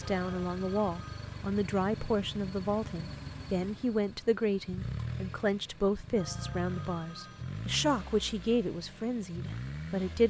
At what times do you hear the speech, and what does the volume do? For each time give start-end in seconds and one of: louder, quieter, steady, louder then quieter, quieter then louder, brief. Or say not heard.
0.0-10.2 steady.